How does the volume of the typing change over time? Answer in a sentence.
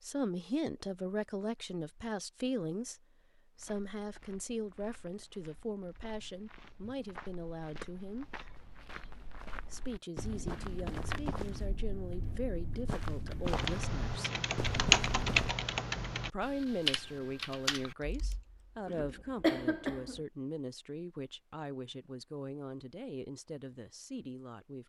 The volume of the typing goes up, then down.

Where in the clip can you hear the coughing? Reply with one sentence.
You can hear the coughing from 18.9 to 20.2 s.